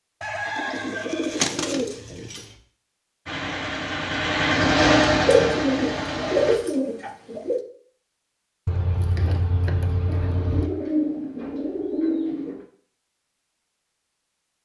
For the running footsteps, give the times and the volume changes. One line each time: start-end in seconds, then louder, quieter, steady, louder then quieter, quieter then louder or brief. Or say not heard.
not heard.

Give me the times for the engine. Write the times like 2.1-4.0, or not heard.
3.2-6.6.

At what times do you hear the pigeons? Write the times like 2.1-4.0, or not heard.
0.2-2.4, 5.2-7.7, 10.1-12.6.